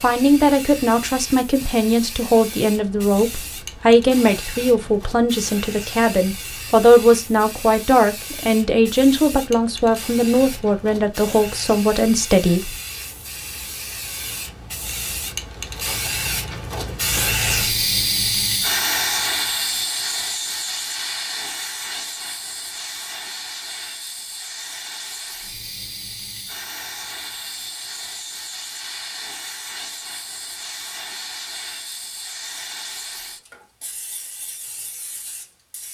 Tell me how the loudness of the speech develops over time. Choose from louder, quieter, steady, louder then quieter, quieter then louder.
steady.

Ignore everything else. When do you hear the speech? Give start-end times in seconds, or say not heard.
0.0-12.8.